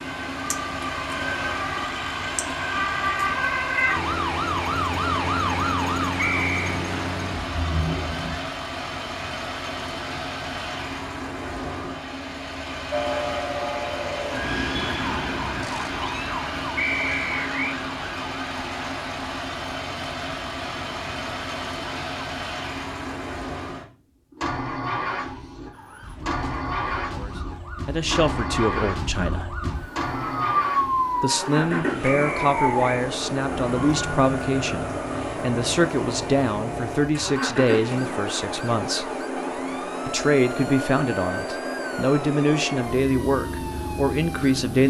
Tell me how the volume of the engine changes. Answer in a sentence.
The loudness of the engine stays about the same.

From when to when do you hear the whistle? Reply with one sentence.
You can hear the whistle from 6.2 to 6.8 s, from 16.8 to 17.8 s and from 32.0 to 33.0 s.